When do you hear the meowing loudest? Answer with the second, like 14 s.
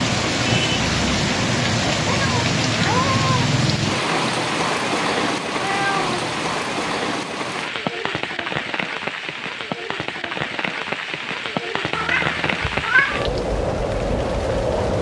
13 s.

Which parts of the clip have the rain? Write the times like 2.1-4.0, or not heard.
0.0-14.9.